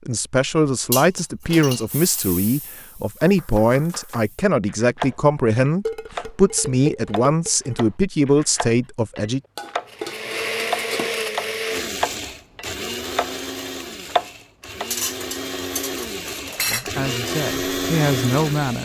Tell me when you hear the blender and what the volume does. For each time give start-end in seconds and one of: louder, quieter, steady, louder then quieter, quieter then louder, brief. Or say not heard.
9.8-18.8 quieter then louder.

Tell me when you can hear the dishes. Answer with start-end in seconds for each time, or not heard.
0.9-2.2, 5.8-7.8, 9.6-11.1, 14.9-16.9.